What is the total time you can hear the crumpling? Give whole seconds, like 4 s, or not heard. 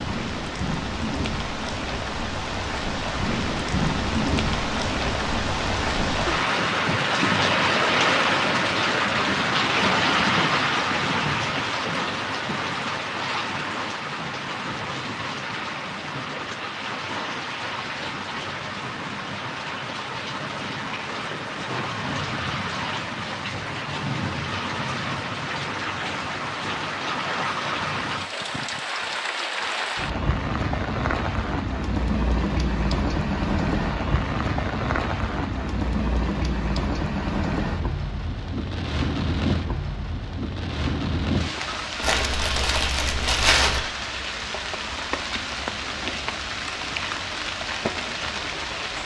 2 s.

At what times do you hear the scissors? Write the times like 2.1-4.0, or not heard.
not heard.